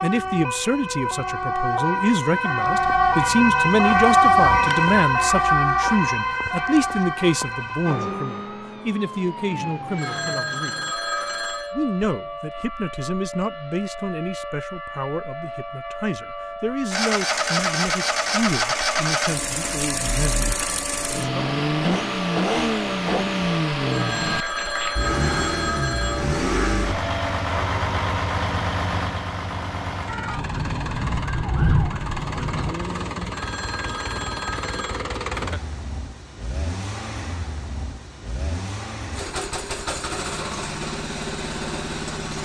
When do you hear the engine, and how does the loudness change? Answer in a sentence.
The engine can be heard from 16.9 to 42.4 s, getting quieter.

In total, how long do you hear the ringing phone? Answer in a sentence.
You can hear the ringing phone for 6 seconds altogether.